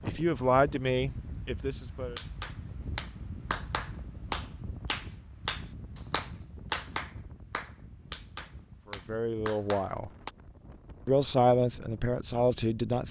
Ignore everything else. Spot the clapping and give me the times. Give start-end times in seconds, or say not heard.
2.1-10.3.